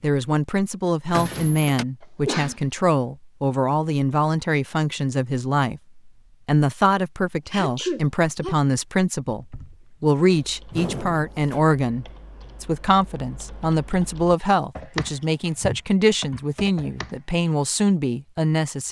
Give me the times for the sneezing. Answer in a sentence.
The sneezing can be heard from 2.0 to 2.6 s, from 7.5 to 8.6 s and from 14.9 to 15.8 s.